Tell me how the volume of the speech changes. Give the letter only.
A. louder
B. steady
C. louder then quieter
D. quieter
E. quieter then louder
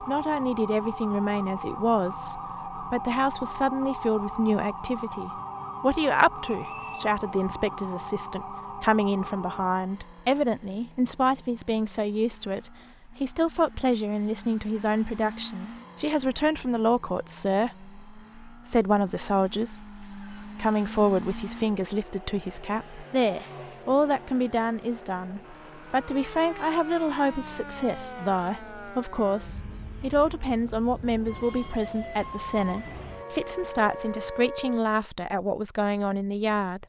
B.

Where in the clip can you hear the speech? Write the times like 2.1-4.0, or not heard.
0.0-36.8.